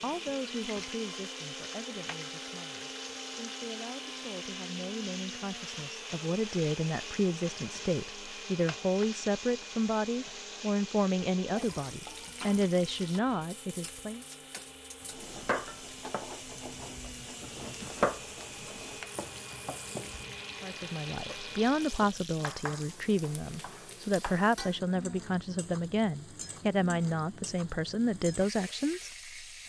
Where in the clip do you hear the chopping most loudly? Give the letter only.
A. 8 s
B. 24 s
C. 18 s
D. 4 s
C.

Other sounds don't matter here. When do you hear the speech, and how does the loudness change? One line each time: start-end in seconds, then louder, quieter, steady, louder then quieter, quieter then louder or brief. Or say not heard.
0.0-14.2 louder
20.6-29.6 steady.